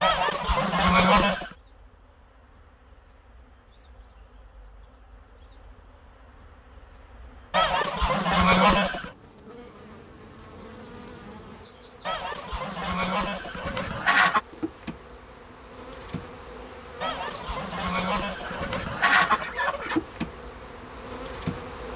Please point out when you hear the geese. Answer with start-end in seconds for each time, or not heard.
0.0-1.6, 7.5-9.1, 12.1-14.4, 17.0-20.0.